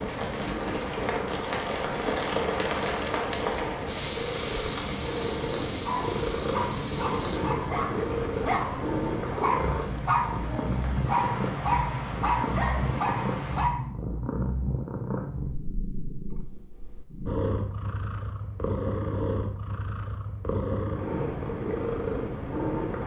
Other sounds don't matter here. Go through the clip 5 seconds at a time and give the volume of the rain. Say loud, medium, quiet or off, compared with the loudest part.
loud, medium, medium, off, off.